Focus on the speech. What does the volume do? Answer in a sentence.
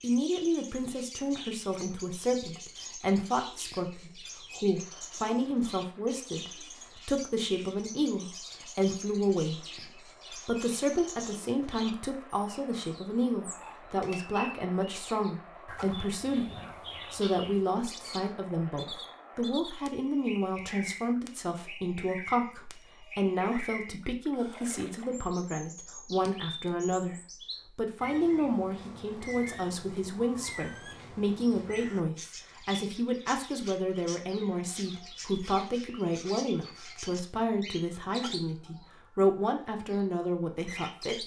The volume of the speech stays about the same.